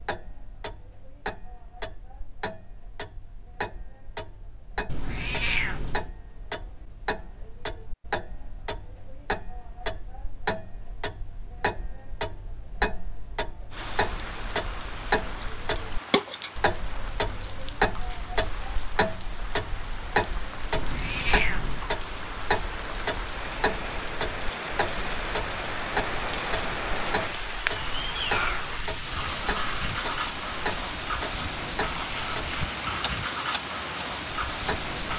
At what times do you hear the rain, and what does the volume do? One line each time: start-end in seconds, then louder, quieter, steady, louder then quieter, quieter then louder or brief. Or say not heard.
13.7-35.1 louder.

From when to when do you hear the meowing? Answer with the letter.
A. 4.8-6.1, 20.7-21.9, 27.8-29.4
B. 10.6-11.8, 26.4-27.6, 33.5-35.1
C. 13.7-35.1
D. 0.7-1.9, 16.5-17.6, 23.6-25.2
A.